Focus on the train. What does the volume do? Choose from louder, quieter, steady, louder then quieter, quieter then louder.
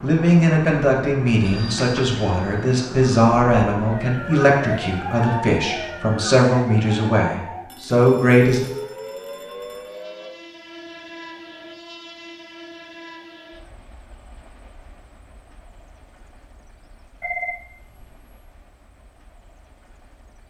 quieter.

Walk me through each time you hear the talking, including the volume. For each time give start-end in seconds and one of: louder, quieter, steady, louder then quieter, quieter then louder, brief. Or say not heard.
0.0-8.7 steady.